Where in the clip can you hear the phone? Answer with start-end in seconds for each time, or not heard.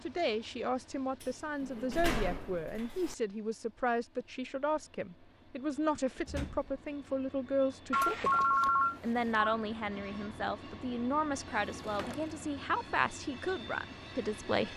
7.9-9.5.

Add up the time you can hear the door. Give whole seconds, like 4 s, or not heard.
4 s.